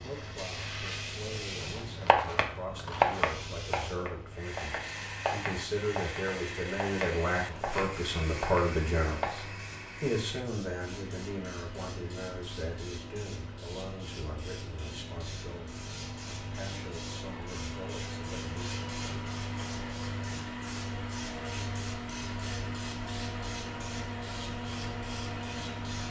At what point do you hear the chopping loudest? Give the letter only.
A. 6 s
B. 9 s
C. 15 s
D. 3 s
D.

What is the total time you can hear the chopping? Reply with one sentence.
The chopping can be heard for 8 seconds in total.